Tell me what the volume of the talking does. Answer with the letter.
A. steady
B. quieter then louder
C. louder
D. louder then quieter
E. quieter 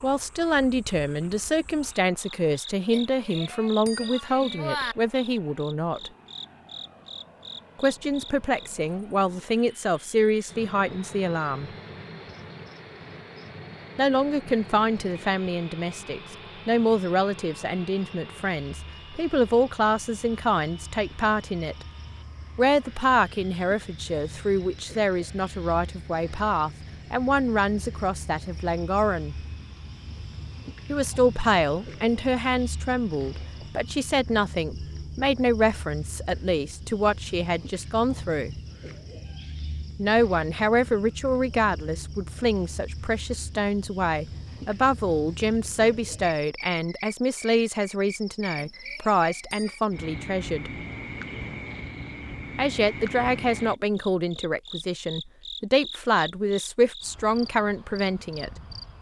A.